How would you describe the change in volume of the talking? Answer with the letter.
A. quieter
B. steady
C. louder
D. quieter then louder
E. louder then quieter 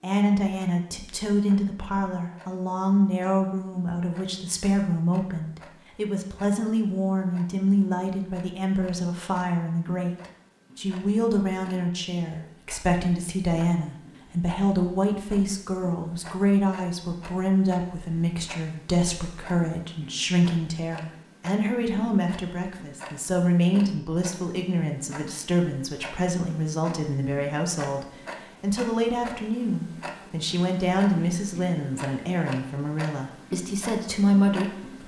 B.